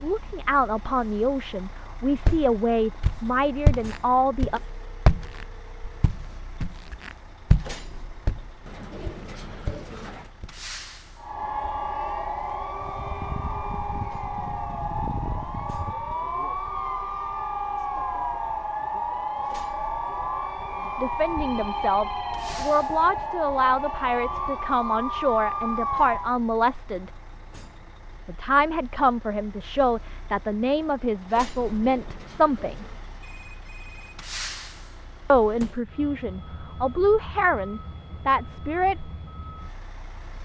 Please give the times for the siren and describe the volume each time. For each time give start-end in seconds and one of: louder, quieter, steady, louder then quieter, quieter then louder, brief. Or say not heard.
11.2-26.4 steady.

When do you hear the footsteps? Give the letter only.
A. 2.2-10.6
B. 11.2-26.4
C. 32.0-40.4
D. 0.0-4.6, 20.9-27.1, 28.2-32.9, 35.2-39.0
A.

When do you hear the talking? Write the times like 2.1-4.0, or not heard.
0.0-4.6, 20.9-27.1, 28.2-32.9, 35.2-39.0.